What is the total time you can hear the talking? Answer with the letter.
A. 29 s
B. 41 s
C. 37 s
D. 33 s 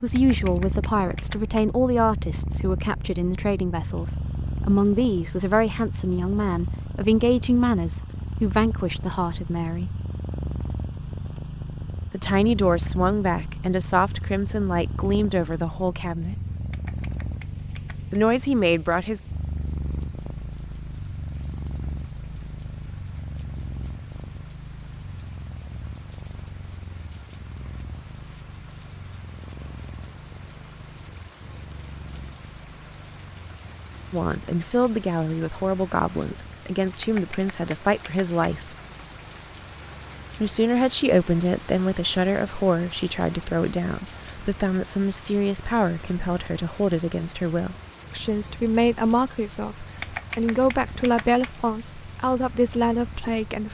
D.